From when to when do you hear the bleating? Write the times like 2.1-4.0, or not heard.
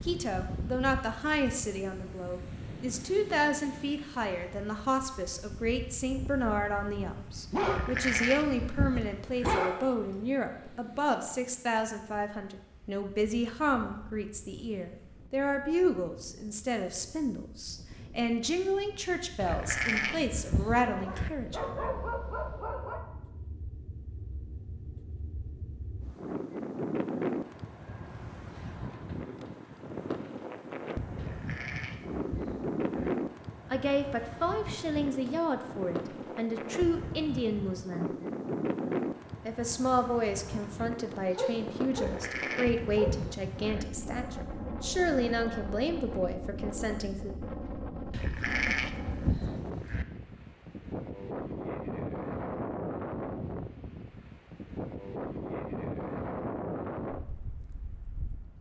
7.7-9.6, 19.4-21.3, 31.1-33.1, 41.9-43.9, 48.1-50.0.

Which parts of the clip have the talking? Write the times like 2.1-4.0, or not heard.
0.0-21.6, 33.7-38.1, 39.5-47.3.